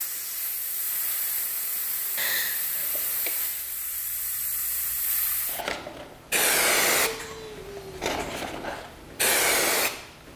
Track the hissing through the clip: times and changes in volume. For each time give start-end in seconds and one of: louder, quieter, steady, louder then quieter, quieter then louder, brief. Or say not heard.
0.0-10.3 louder.